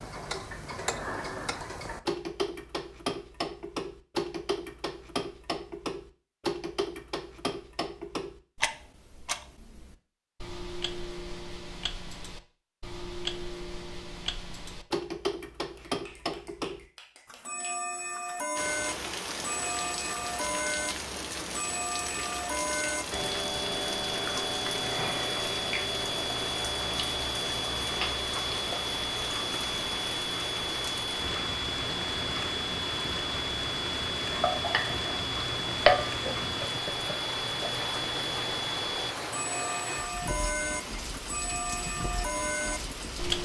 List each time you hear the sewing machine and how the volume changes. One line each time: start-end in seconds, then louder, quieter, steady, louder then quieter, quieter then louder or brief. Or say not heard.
not heard.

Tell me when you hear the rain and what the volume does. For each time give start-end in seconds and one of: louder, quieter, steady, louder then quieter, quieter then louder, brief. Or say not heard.
18.6-43.4 steady.